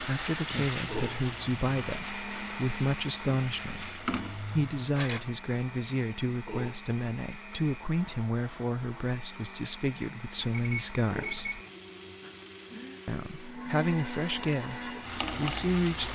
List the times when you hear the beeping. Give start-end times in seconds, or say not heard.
10.3-11.7.